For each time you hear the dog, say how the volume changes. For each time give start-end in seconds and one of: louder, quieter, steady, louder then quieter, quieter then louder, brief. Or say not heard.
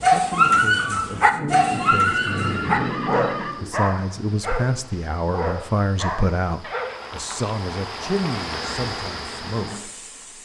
0.0-7.0 quieter.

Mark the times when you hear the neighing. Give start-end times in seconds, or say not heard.
1.5-3.5, 6.6-8.6.